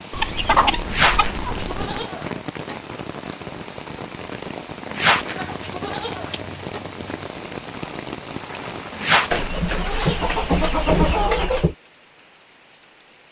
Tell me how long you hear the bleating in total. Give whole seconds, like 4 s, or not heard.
5 s.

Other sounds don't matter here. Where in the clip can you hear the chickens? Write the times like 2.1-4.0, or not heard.
0.1-2.0, 5.3-7.2, 9.3-11.8.